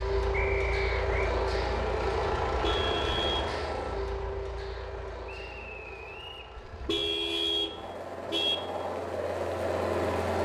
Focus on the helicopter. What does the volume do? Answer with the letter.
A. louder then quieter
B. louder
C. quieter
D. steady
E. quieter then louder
E.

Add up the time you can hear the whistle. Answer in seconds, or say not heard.
2 s.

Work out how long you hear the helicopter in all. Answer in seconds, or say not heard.
10 s.